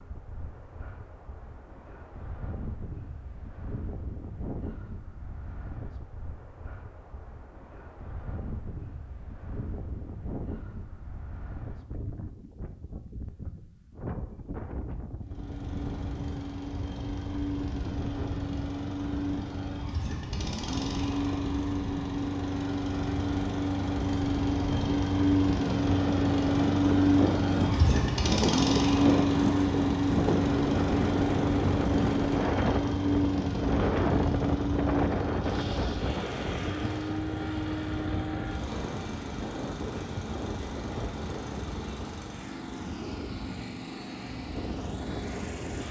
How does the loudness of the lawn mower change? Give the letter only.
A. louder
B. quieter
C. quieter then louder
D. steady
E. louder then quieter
E.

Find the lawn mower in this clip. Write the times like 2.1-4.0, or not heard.
15.2-45.8.